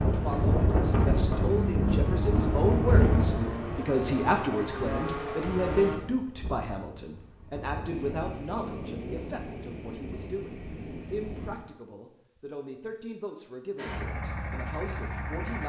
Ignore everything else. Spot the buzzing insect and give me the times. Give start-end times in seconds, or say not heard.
not heard.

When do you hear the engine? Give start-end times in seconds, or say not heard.
0.0-6.0, 13.8-15.6.